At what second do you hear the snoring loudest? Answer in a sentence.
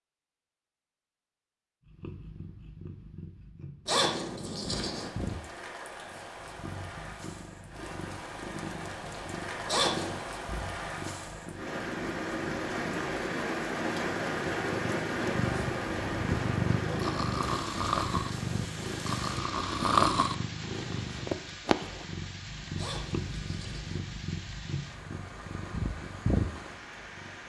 The loudest moment of the snoring is at 20 seconds.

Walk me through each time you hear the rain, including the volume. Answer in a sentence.
The rain can be heard from 4.7 to 27.4 s, getting louder then quieter.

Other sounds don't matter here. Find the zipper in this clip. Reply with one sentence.
The zipper can be heard from 3.9 to 5.1 s, from 9.7 to 10.2 s and from 22.8 to 24.0 s.